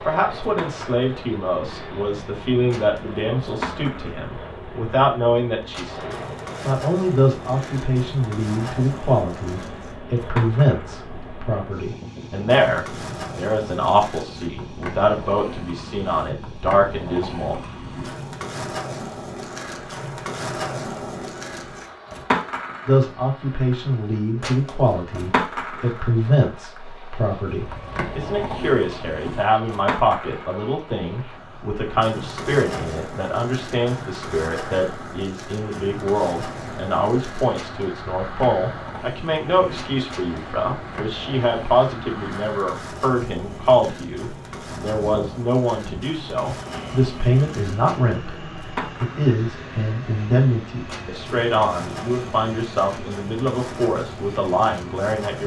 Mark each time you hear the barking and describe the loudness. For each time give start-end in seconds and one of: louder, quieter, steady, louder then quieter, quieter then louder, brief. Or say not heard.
not heard.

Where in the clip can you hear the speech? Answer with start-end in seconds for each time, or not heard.
0.1-17.6, 22.9-55.4.